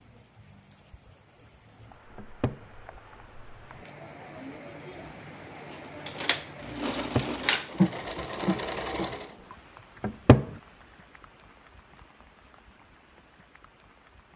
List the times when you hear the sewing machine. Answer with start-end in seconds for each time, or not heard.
5.7-9.3.